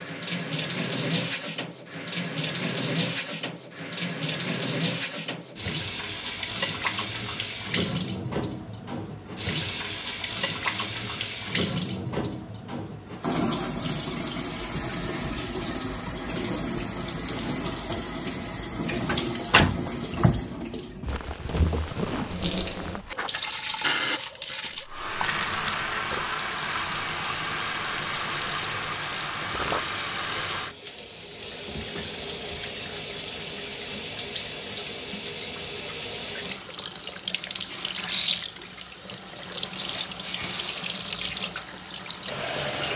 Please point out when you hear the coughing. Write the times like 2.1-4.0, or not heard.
not heard.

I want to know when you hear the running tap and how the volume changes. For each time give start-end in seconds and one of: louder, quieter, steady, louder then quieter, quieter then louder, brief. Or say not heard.
0.0-42.9 steady.